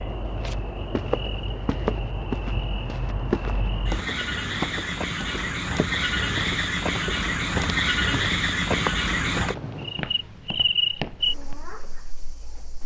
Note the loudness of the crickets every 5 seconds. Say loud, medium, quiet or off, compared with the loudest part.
medium, loud, loud.